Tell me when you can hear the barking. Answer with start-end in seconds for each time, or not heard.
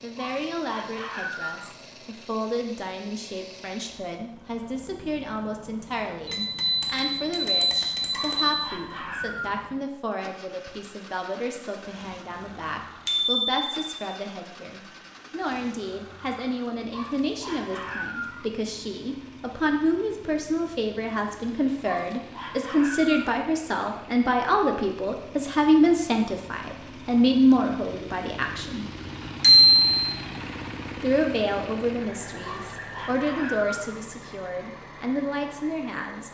0.1-1.8, 8.1-9.7, 16.9-18.5, 21.9-23.2, 32.4-34.0.